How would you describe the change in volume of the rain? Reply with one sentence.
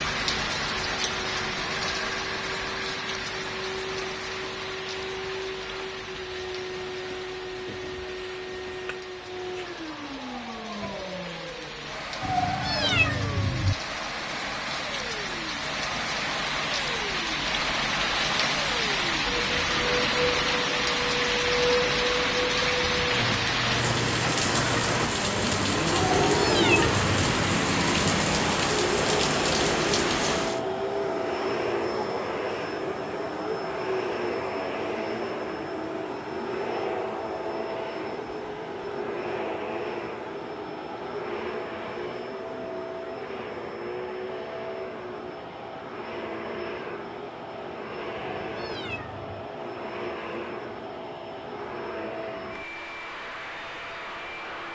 The volume of the rain goes down, then up.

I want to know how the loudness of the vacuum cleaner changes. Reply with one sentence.
The volume of the vacuum cleaner goes up, then down.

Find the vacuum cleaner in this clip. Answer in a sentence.
You can hear the vacuum cleaner from 0.1 to 54.7 s.